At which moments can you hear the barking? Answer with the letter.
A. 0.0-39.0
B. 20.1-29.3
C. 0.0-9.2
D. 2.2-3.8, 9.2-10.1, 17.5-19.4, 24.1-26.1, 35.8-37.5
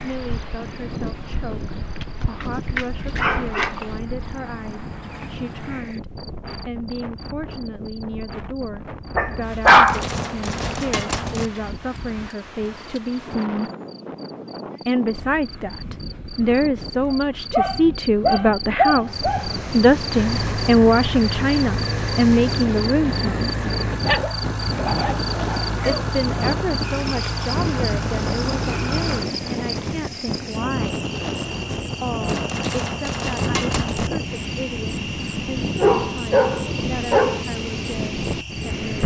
D.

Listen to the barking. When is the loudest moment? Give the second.
10 s.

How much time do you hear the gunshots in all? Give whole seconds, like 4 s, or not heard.
4 s.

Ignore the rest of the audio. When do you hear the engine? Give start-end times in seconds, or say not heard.
20.1-29.3.